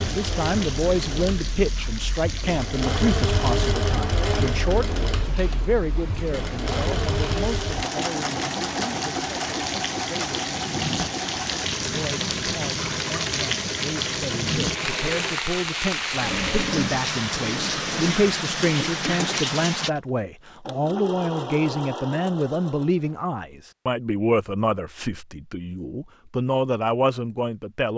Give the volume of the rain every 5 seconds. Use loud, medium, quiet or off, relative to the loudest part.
medium, medium, loud, loud, off, off.